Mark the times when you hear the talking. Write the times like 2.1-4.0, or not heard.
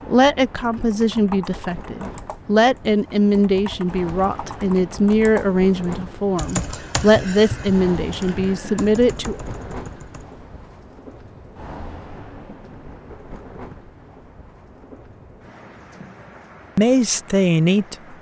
0.1-9.3, 16.8-18.1.